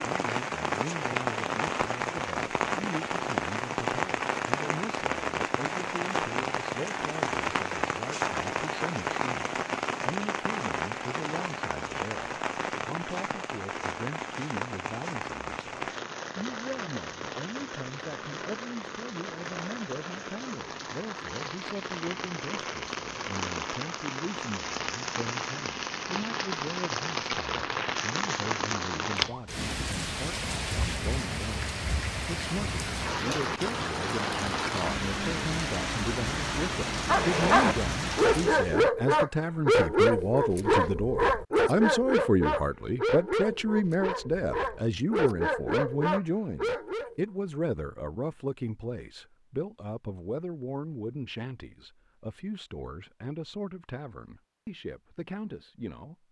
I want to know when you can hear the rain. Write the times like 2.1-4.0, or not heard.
0.0-38.9.